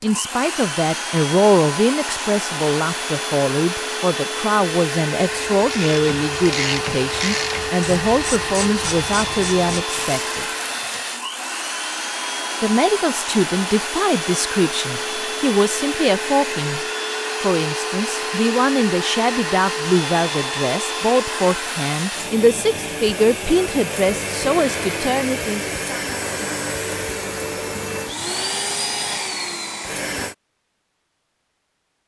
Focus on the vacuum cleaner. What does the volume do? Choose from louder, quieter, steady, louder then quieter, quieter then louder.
steady.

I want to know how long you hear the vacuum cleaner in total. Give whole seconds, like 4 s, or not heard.
30 s.